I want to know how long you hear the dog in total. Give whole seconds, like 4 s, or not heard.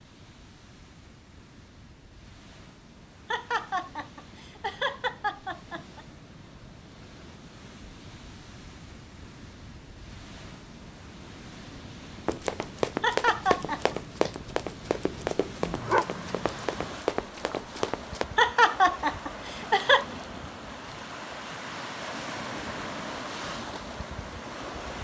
2 s.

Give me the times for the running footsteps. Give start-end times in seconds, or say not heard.
12.2-18.2.